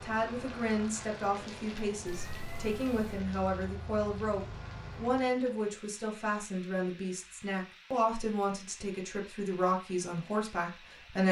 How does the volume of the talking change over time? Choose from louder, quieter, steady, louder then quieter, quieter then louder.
steady.